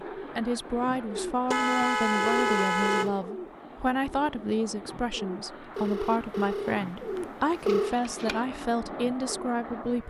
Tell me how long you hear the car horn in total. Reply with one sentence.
The car horn can be heard for 2 seconds in total.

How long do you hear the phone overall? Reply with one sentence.
The phone can be heard for 3 seconds in total.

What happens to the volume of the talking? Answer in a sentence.
The loudness of the talking stays about the same.